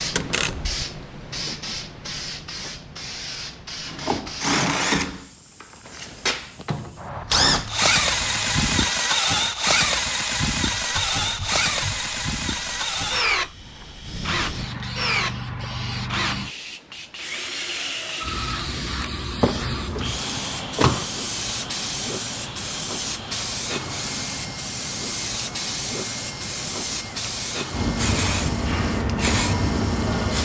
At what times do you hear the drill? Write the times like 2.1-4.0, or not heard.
3.9-30.4.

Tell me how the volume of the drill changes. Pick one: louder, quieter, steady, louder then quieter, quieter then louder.
quieter.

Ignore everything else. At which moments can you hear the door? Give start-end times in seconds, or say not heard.
0.1-0.8, 19.4-21.1.